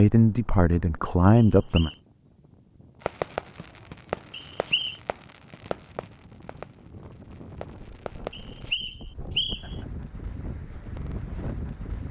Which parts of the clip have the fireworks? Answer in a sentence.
You can hear the fireworks from 3.0 to 8.7 s.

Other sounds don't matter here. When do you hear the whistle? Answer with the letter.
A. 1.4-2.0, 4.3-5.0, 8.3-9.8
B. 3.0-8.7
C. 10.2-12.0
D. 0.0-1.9
A.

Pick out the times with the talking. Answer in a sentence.
The talking can be heard from 0.0 to 1.9 s.